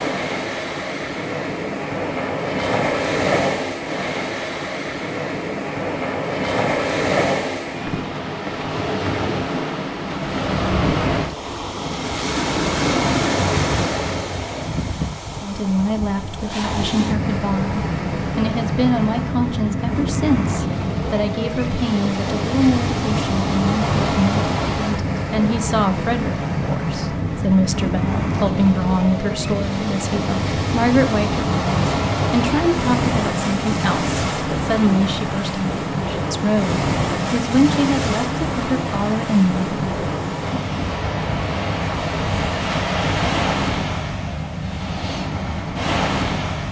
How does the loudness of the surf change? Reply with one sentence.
The loudness of the surf stays about the same.